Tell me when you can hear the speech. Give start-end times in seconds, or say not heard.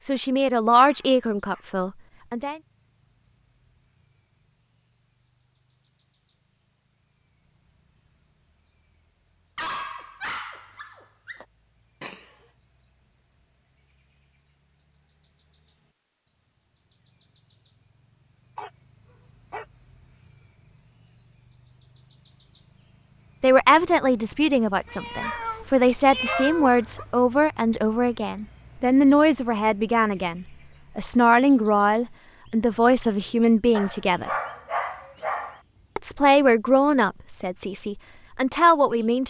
0.1-2.6, 23.4-34.3, 36.0-39.2.